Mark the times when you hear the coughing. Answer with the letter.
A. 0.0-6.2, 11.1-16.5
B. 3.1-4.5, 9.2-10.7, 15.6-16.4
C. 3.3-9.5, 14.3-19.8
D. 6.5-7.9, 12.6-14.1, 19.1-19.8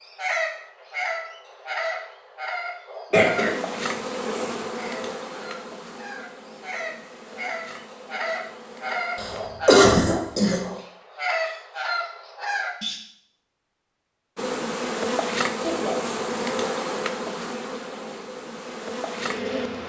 B.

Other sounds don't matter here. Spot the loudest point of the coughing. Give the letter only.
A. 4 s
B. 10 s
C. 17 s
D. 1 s
B.